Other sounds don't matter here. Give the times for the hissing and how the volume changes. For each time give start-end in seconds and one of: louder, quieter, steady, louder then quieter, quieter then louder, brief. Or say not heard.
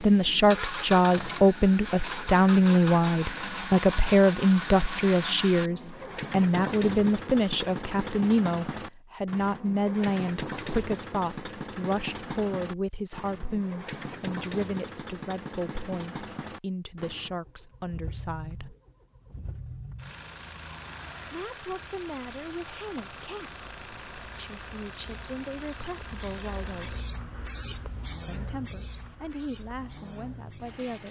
23.8-31.0 louder then quieter.